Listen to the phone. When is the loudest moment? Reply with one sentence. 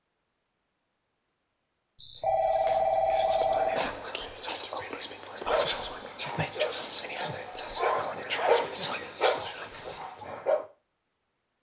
The volume of the phone peaks at 3 seconds.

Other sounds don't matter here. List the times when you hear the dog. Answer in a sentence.
The dog can be heard from 5.5 to 10.7 s.